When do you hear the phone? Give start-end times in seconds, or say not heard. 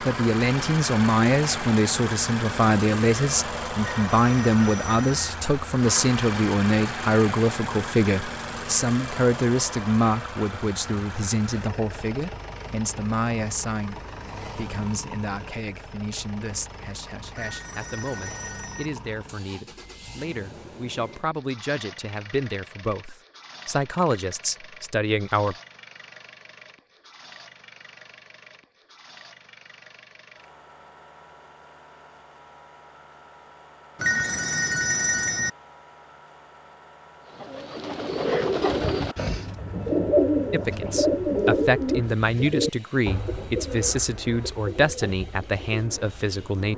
3.8-5.2, 17.4-18.9, 34.0-35.5.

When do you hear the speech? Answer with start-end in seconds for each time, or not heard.
0.0-25.6, 40.5-46.7.